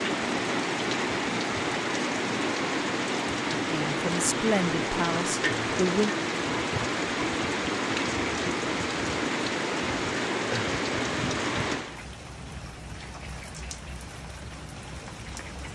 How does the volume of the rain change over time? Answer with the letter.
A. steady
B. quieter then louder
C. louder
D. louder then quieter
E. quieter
E.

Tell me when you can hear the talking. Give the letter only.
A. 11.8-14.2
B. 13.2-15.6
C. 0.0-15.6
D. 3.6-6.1
D.